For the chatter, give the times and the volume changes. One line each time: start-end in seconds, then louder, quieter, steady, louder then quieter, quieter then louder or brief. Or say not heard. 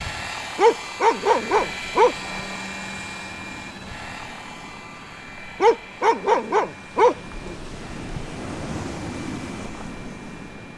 not heard.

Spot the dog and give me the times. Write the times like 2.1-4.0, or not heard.
0.6-2.1, 5.6-7.5.